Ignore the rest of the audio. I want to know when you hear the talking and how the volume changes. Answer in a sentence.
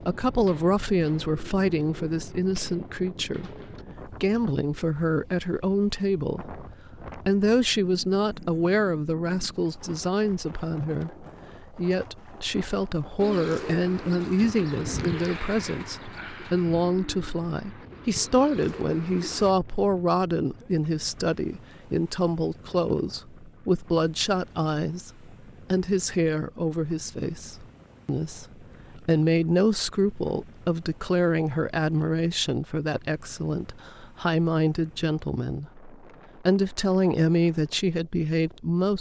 The talking can be heard from 0.1 to 38.9 s, at a steady volume.